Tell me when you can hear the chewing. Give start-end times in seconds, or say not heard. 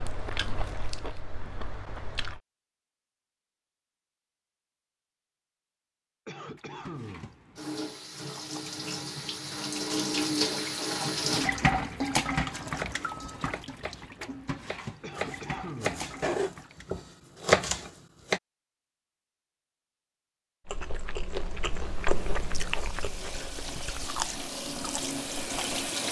0.0-2.4, 20.6-25.9.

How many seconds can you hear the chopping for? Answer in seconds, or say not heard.
6 s.